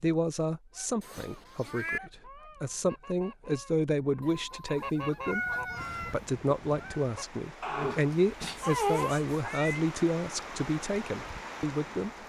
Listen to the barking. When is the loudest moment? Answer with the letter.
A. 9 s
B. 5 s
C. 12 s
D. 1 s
A.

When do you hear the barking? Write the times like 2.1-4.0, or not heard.
7.6-9.2.